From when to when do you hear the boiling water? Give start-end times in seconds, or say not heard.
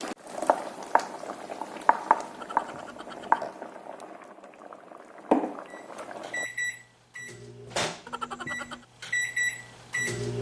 0.0-6.5.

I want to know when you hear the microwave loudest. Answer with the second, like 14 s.
10 s.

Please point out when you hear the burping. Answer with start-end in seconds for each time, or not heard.
2.3-3.5, 8.1-8.8.